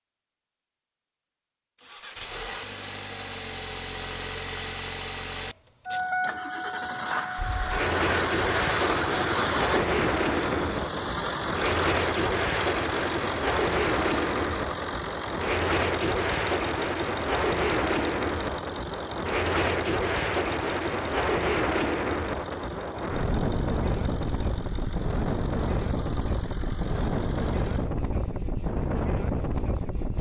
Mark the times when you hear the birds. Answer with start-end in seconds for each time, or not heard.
not heard.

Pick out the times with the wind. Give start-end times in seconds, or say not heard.
7.3-30.1.